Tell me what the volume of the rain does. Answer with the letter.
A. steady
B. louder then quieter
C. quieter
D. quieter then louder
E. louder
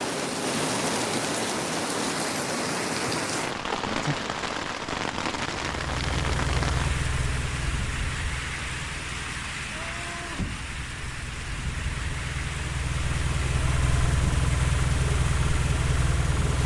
C.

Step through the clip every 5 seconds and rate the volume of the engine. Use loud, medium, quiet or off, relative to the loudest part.
off, medium, loud, loud.